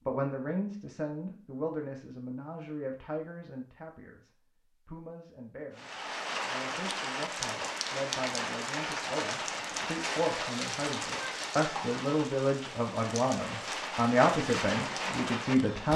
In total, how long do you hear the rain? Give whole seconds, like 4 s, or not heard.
10 s.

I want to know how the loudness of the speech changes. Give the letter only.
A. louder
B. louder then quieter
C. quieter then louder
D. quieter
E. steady
C.